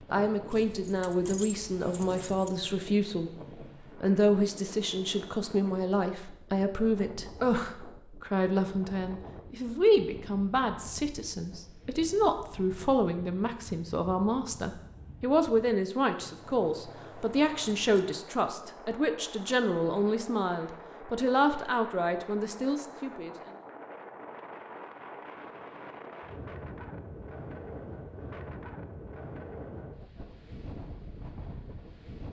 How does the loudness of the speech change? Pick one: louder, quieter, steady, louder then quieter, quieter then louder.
steady.